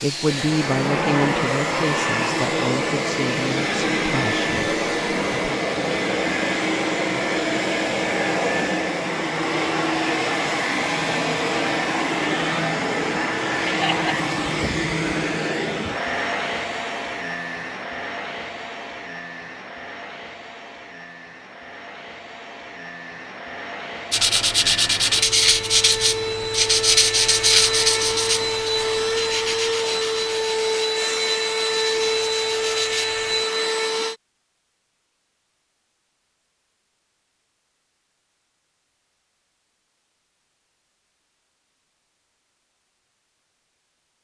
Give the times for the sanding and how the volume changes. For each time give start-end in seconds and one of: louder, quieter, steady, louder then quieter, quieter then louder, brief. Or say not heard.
24.1-33.5 quieter.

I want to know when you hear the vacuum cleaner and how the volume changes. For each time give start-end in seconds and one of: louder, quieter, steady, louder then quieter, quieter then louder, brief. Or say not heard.
0.0-34.1 quieter then louder.